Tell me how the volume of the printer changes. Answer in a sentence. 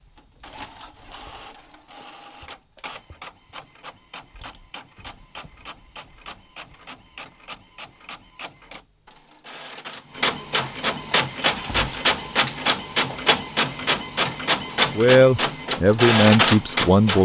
The loudness of the printer goes up.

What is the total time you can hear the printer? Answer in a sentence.
The printer can be heard for 17 seconds in total.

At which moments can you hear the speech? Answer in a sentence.
The speech can be heard from 14.9 to 17.2 s.